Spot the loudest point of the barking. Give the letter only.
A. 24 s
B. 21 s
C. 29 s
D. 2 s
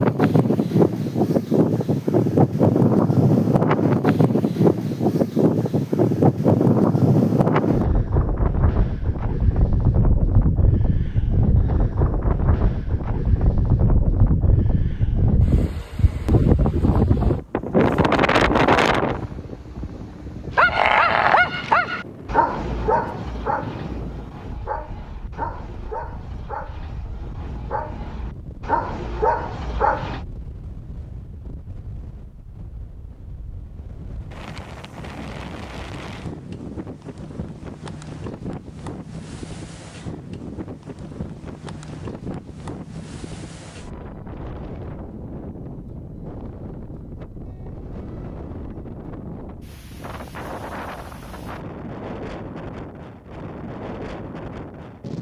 B.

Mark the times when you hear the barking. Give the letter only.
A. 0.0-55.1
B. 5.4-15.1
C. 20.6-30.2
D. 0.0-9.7
C.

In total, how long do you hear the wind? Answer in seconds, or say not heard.
55 s.